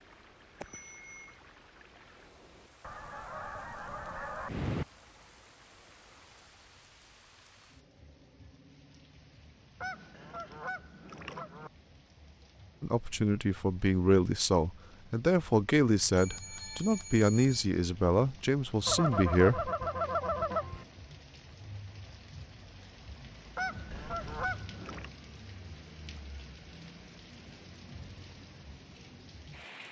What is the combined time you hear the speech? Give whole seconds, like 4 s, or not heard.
7 s.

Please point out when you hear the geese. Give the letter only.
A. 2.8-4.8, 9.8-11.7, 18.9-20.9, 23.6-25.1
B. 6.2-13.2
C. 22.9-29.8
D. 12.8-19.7
A.